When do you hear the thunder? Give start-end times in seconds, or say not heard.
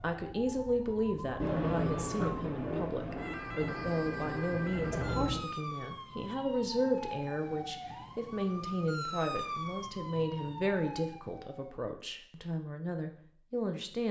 1.4-5.4.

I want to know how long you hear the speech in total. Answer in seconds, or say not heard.
14 s.